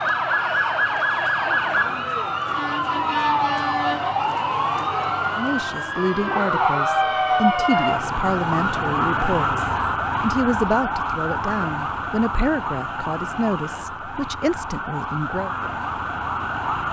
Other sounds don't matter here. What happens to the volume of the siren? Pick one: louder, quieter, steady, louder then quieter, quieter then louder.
quieter.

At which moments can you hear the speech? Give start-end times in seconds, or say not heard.
5.3-15.5.